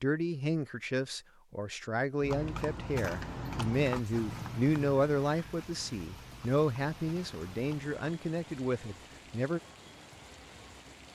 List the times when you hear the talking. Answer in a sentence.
You can hear the talking from 0.0 to 9.6 s.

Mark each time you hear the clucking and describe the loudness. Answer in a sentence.
The clucking can't be heard in this clip.